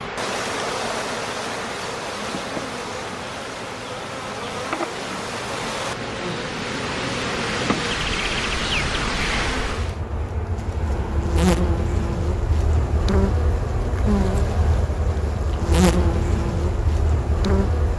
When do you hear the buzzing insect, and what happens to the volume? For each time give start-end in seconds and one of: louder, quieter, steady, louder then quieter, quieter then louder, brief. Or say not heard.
0.0-17.9 louder.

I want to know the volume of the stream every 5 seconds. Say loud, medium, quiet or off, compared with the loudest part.
loud, loud, off, off.